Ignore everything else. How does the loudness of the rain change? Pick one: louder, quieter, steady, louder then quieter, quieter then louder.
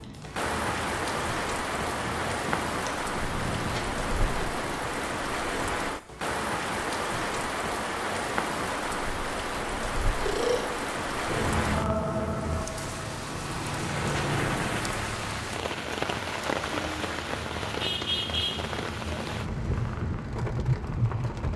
steady.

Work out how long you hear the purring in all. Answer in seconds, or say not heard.
14 s.